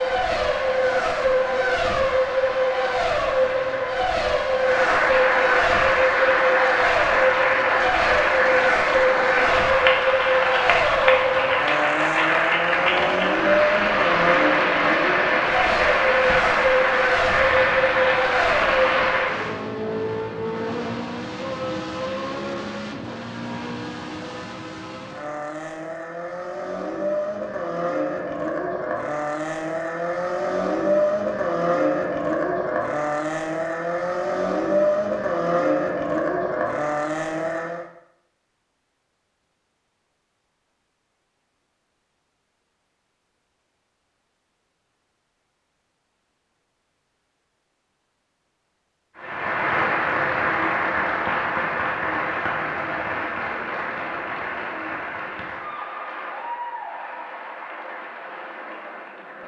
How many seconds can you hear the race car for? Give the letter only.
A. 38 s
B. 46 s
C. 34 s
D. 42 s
A.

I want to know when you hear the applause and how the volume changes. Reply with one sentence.
You can hear the applause from 0.0 to 19.6 s, getting louder; and from 49.1 to 59.4 s, getting quieter.